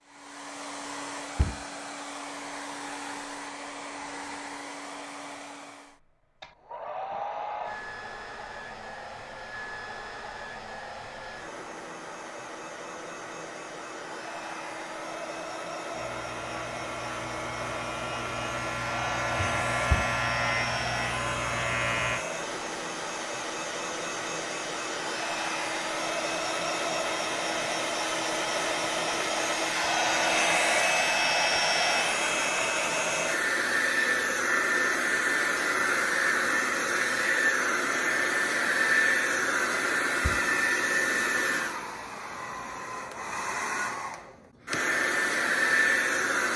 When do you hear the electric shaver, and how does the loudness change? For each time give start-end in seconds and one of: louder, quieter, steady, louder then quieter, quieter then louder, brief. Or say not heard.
15.9-22.2 louder.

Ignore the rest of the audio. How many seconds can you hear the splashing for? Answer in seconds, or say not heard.
not heard.